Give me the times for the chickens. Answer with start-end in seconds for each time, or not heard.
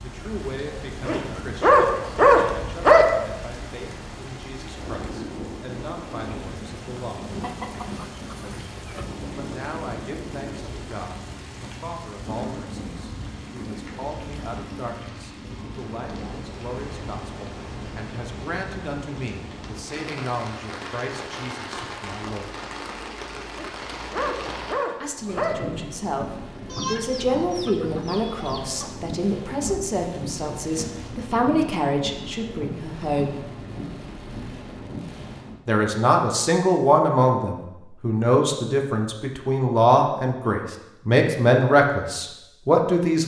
7.4-9.1, 26.6-28.9.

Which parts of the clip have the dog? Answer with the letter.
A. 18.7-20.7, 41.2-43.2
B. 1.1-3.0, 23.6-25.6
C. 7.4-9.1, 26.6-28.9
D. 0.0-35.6
B.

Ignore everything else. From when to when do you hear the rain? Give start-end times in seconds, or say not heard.
0.0-35.6.